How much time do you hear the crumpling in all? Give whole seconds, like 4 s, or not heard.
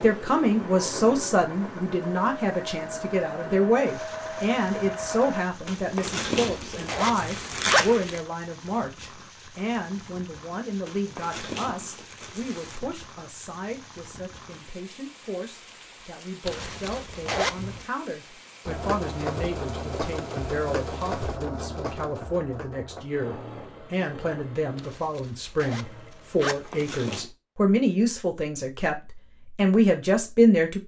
5 s.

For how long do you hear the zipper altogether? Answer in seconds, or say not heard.
6 s.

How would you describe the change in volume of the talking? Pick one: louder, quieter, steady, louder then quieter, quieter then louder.
quieter then louder.